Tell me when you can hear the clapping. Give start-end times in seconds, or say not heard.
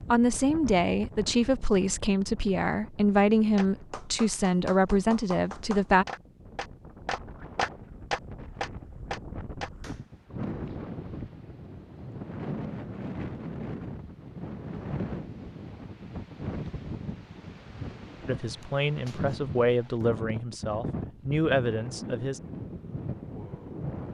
3.5-10.0.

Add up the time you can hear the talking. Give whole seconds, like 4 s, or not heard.
10 s.